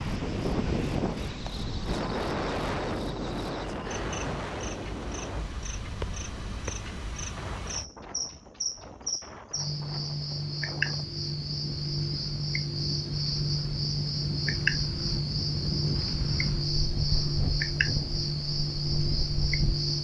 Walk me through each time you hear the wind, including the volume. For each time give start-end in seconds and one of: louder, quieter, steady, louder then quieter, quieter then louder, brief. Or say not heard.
0.0-19.9 quieter then louder.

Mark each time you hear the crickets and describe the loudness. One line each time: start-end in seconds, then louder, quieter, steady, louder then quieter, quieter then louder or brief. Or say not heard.
0.0-19.9 louder.